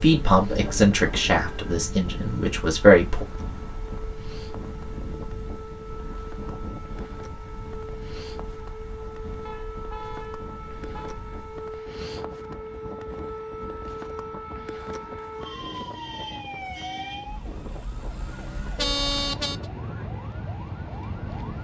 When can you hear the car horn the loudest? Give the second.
19 s.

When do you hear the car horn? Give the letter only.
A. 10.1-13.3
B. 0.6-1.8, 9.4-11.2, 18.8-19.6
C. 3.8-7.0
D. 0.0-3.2
B.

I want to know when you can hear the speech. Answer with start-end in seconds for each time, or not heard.
0.0-3.2.